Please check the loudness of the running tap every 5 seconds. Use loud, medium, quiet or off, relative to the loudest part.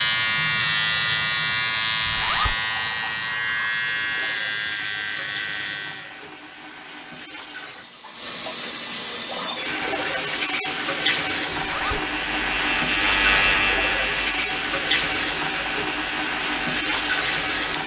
quiet, medium, loud, loud.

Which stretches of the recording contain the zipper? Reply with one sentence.
You can hear the zipper from 2.0 to 2.5 s and from 11.6 to 12.0 s.